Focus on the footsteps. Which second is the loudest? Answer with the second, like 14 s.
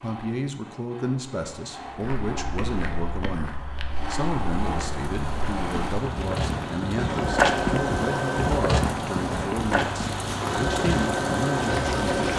8 s.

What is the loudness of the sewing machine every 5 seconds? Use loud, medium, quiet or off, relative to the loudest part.
medium, loud, loud.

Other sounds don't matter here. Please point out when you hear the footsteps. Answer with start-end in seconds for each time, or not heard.
1.9-11.2.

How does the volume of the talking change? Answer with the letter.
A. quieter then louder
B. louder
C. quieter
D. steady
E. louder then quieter
D.